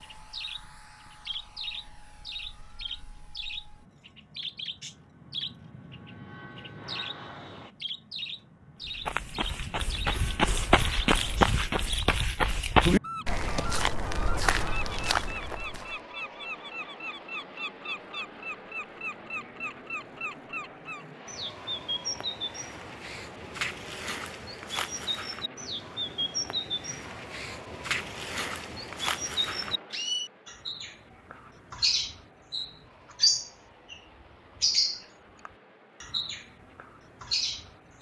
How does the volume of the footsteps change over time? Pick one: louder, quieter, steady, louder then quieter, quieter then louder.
louder then quieter.